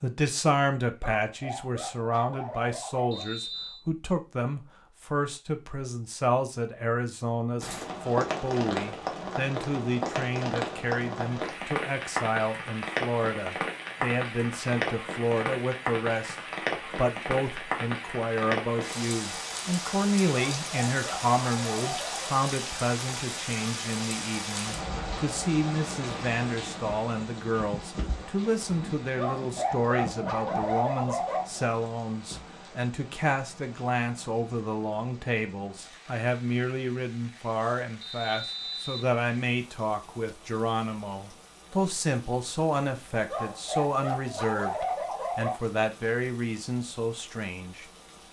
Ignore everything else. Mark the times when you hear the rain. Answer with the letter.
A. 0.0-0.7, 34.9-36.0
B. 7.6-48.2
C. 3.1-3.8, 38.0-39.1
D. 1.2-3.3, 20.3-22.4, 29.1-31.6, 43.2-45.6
B.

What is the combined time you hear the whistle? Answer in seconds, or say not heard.
2 s.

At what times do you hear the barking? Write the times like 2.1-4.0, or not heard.
1.2-3.3, 20.3-22.4, 29.1-31.6, 43.2-45.6.